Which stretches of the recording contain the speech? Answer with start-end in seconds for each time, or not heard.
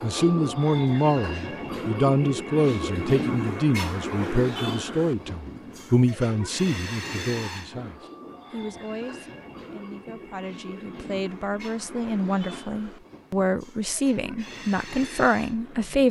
0.0-16.0.